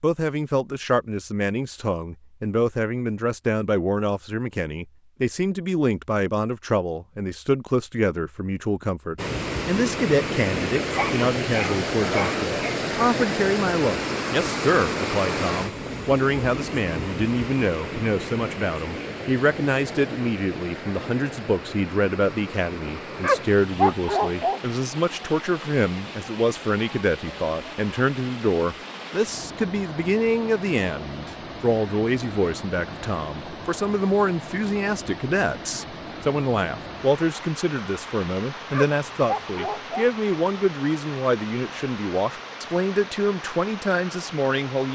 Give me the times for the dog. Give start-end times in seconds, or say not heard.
10.9-12.8, 23.2-24.6, 38.7-40.1.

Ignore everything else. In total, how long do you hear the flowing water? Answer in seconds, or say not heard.
36 s.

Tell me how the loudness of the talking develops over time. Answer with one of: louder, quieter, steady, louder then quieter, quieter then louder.
steady.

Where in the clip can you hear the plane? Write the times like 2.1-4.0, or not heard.
not heard.